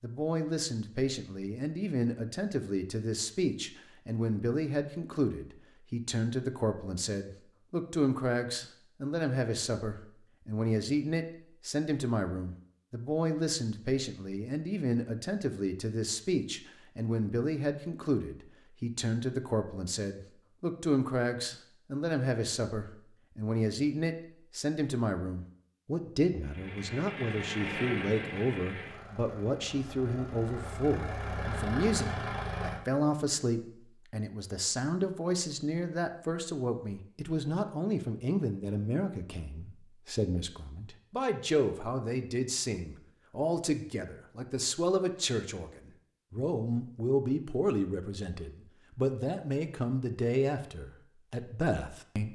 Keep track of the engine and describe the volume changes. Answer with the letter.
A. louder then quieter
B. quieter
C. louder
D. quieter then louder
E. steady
D.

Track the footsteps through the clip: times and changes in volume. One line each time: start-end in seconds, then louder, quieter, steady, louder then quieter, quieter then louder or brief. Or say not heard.
not heard.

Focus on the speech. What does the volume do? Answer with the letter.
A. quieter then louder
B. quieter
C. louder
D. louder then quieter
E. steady
E.